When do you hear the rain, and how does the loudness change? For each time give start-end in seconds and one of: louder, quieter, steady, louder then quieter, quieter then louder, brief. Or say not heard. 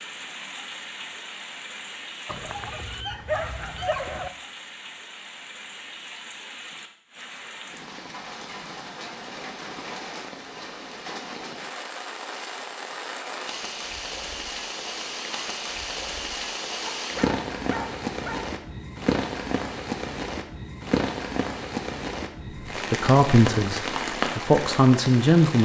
0.0-25.6 louder.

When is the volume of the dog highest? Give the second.
3 s.